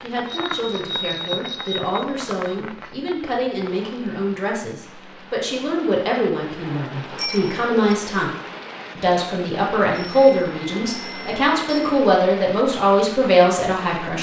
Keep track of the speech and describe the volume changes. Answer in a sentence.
The loudness of the speech goes up.